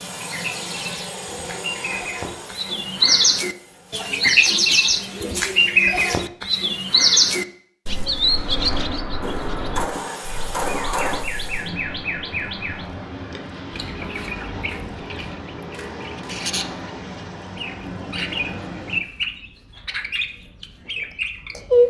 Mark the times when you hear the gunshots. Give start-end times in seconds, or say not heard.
9.2-11.2.